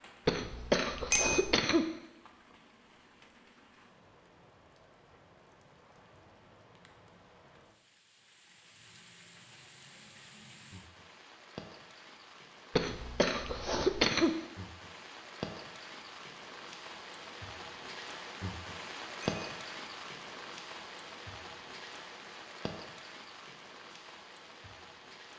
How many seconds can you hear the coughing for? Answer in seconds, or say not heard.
3 s.